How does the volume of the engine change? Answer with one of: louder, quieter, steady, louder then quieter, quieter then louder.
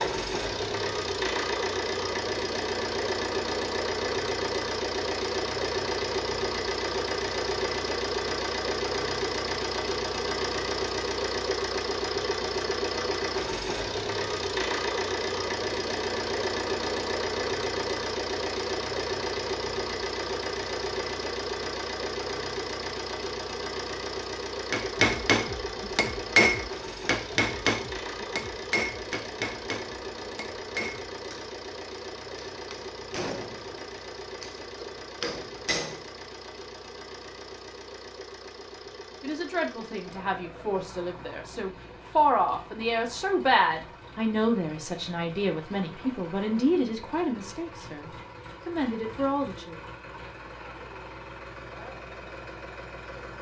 quieter.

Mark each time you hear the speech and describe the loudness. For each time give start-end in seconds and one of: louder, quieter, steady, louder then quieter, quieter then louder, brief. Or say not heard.
39.2-49.9 louder then quieter.